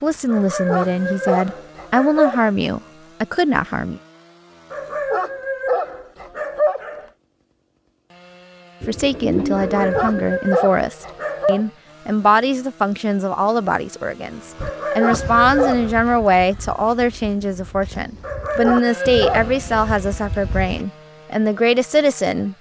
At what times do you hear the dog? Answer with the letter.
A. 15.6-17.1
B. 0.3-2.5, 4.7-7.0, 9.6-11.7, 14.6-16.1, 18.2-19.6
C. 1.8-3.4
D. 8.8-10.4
B.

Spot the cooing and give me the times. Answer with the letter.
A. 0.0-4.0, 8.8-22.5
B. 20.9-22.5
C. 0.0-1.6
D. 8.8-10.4
D.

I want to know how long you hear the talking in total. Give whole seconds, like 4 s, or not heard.
18 s.